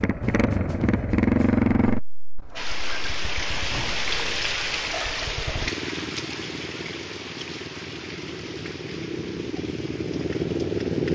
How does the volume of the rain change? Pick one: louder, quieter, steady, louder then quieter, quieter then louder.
quieter.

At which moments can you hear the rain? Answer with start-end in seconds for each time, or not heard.
2.5-11.1.